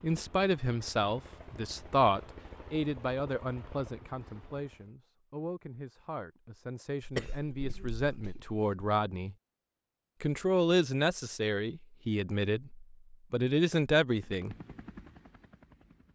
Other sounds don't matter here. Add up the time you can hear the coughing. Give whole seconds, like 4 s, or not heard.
2 s.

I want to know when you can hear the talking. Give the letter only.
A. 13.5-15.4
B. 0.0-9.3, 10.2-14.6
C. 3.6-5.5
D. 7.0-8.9
B.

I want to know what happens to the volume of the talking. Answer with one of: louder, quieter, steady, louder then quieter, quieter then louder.
quieter then louder.